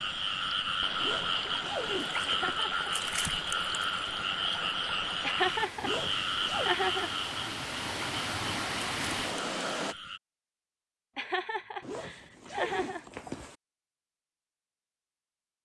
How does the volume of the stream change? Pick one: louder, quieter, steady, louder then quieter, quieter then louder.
louder.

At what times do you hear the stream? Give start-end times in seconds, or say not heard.
0.0-9.9.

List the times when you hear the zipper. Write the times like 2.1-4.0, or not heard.
0.9-2.6, 5.8-6.8, 11.8-13.6.